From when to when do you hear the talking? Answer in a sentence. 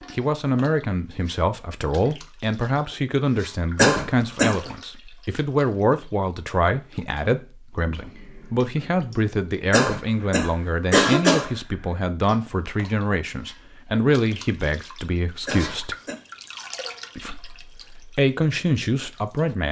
The talking can be heard from 0.1 to 15.9 s and from 17.1 to 19.6 s.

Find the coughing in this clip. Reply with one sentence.
The coughing can be heard from 3.8 to 4.6 s, from 9.7 to 11.5 s and from 15.4 to 16.1 s.